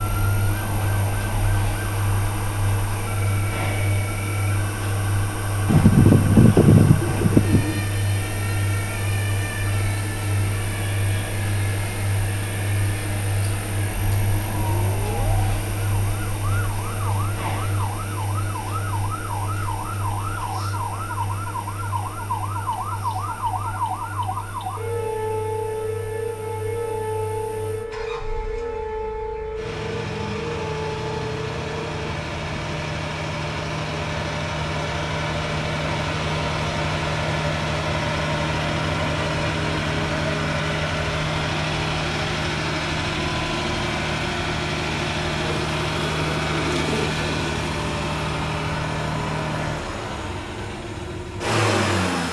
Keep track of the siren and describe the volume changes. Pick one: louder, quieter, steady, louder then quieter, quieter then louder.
louder.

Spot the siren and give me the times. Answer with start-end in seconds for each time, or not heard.
0.0-32.1.